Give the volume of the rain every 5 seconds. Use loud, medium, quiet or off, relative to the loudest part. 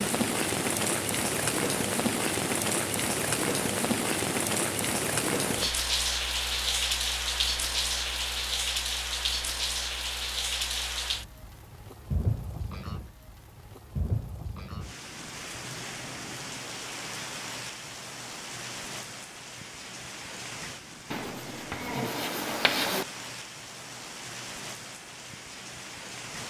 loud, loud, medium, medium, quiet, quiet.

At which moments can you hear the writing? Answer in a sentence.
The writing can be heard from 21.1 to 23.1 s.